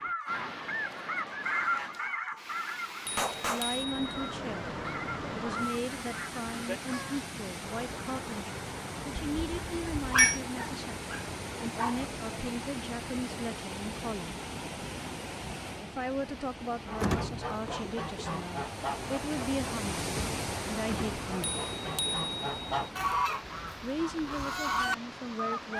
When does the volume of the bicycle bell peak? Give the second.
10 s.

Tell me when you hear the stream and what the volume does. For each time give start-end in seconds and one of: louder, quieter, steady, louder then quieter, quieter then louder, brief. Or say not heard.
0.0-25.7 steady.